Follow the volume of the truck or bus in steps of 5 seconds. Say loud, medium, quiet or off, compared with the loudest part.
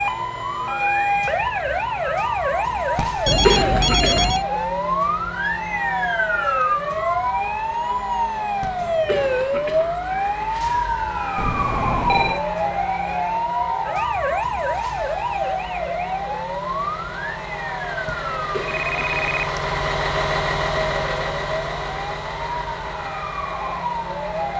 quiet, quiet, quiet, loud, loud.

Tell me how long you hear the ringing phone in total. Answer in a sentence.
The ringing phone can be heard for 3 seconds in total.